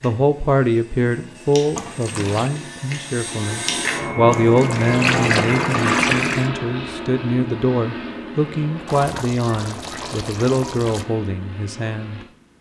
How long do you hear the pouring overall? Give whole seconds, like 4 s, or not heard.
5 s.